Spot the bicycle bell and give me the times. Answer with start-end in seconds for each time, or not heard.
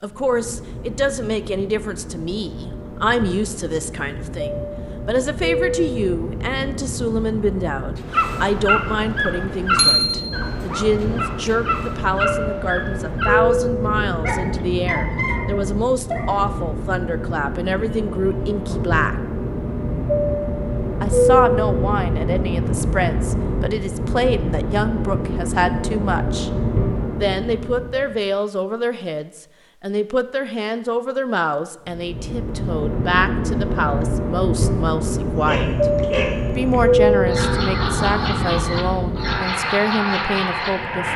9.8-10.4.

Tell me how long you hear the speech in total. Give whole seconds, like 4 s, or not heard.
38 s.